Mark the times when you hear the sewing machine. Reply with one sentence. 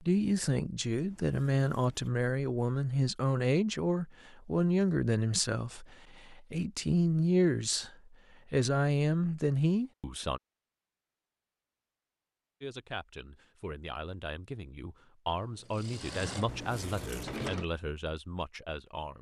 The sewing machine can be heard from 15.3 to 17.6 s.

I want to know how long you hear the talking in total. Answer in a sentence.
The talking can be heard for 16 seconds in total.